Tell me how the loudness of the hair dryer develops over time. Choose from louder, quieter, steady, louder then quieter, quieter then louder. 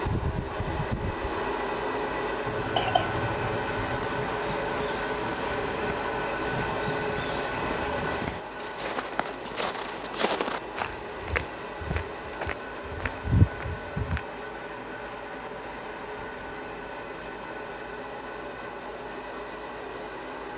quieter.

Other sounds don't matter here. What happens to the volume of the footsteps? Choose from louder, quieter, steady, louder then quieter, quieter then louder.
louder.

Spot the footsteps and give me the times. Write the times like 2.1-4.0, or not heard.
4.0-14.2.